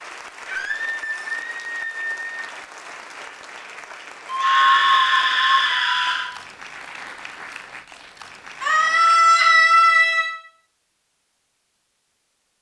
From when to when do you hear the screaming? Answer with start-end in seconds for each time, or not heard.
0.5-2.2, 4.3-6.2, 8.6-10.3.